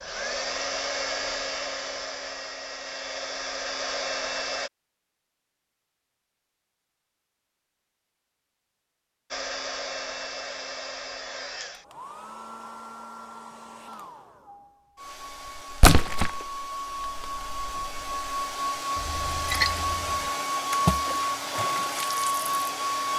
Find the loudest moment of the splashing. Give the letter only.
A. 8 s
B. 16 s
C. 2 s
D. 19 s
B.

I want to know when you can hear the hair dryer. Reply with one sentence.
You can hear the hair dryer from 0.0 to 4.7 s and from 9.3 to 23.1 s.